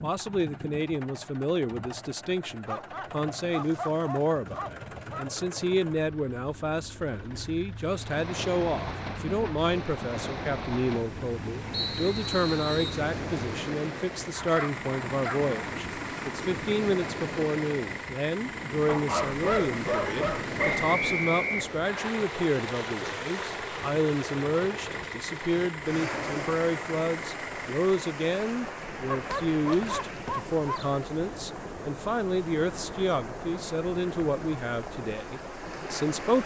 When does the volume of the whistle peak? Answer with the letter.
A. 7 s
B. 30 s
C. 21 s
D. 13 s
C.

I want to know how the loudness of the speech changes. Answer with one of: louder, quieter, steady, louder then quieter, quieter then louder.
steady.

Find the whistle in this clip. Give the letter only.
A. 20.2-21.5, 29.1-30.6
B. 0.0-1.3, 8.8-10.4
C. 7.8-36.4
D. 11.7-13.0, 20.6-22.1
D.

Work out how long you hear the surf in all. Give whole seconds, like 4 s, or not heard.
29 s.